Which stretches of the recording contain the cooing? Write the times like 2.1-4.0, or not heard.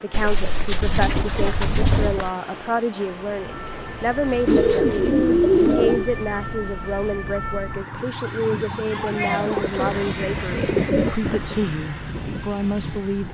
0.1-2.3, 4.5-6.0, 9.2-11.7.